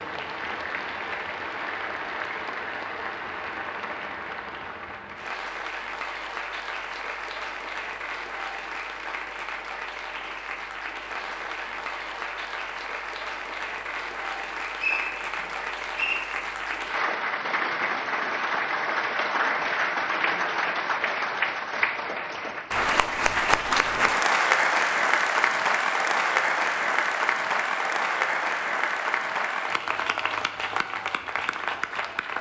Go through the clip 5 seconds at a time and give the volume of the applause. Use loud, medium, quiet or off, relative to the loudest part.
medium, medium, medium, loud, loud, loud, medium.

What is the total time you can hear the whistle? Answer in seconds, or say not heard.
2 s.